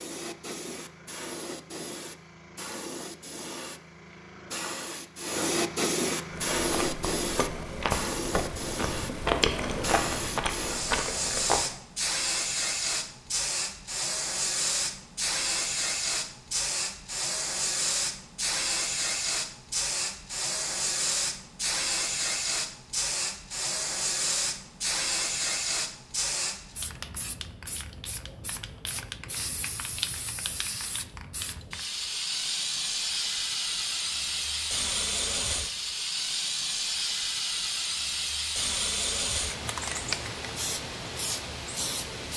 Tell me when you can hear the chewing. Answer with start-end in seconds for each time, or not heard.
6.3-11.8.